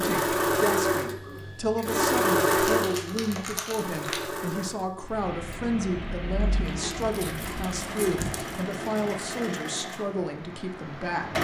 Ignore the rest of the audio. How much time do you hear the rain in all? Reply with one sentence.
You can hear the rain for 6 seconds altogether.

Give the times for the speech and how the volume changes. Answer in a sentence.
You can hear the speech from 0.0 to 11.3 s, at a steady volume.